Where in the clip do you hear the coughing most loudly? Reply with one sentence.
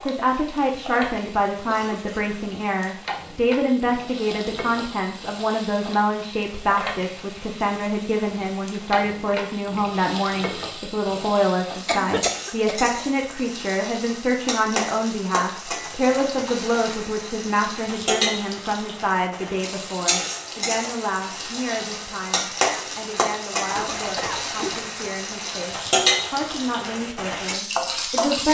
The loudest moment of the coughing is at 12 seconds.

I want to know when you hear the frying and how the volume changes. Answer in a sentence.
You can hear the frying from 0.0 to 28.4 s, getting louder.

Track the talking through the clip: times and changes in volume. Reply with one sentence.
The talking can be heard from 0.1 to 28.4 s, getting quieter.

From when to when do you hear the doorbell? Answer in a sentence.
The doorbell can't be heard in this clip.